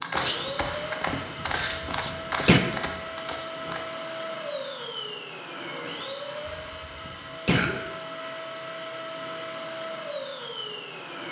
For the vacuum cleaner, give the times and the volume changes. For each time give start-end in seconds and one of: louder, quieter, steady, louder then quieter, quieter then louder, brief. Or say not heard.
0.1-11.2 steady.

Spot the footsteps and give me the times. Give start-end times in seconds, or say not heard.
0.0-3.8.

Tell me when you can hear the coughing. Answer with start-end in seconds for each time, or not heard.
1.4-2.6, 6.5-7.8.